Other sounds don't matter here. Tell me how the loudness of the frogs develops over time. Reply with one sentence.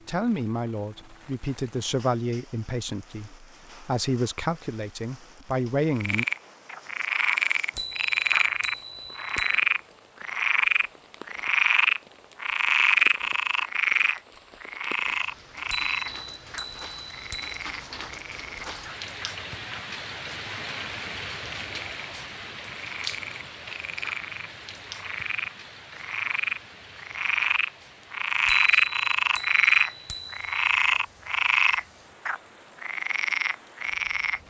The volume of the frogs goes down, then up.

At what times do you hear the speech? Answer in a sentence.
The speech can be heard from 0.1 to 6.2 s.